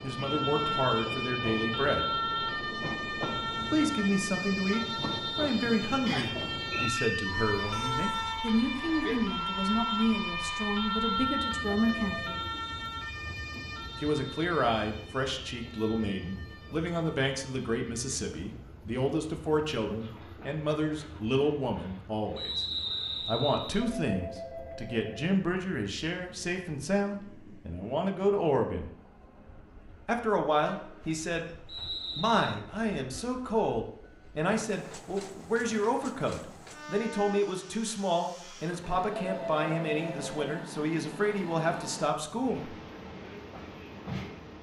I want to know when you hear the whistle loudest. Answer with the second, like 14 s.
23 s.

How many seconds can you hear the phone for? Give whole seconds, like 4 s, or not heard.
4 s.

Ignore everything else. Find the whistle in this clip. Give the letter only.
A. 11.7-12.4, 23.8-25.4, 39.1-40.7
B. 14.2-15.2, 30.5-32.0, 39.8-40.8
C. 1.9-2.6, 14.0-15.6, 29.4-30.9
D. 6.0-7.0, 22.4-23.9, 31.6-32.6
D.